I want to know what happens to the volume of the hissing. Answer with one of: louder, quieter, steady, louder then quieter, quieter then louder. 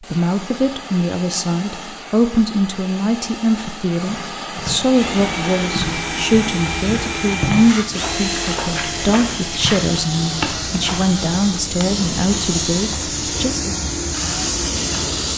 louder.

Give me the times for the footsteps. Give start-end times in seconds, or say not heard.
4.0-11.2.